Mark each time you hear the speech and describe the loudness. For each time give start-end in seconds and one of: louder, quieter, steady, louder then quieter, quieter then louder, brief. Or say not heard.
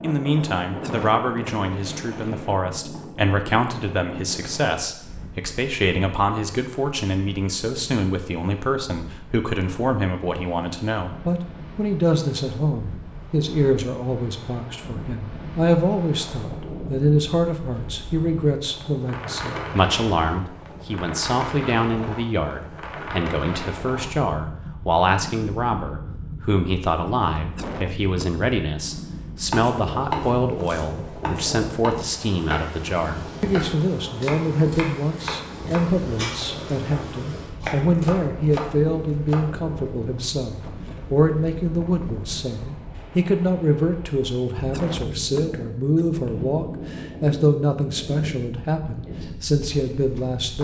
0.0-50.6 steady.